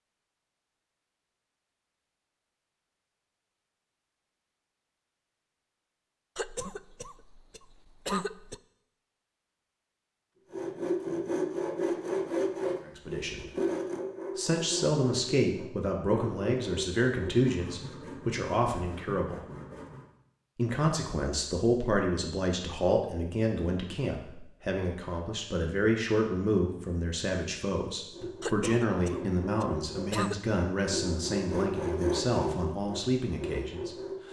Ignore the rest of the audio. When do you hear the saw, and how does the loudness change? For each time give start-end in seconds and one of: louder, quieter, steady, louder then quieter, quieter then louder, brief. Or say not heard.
10.5-20.1 quieter
28.1-34.2 louder then quieter.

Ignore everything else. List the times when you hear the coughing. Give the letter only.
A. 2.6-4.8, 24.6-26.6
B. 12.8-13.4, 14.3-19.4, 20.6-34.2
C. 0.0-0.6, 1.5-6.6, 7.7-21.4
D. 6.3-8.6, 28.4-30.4
D.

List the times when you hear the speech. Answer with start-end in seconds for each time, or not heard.
12.8-13.4, 14.3-19.4, 20.6-34.2.